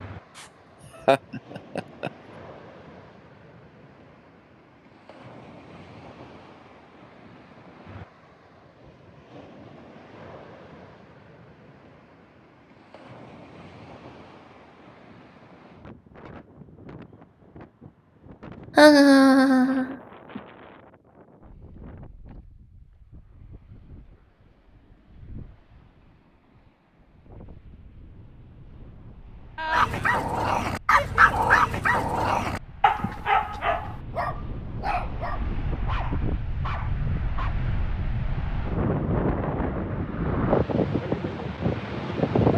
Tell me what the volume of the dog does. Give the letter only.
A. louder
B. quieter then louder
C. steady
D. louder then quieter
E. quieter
E.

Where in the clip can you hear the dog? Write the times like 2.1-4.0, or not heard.
29.7-37.5.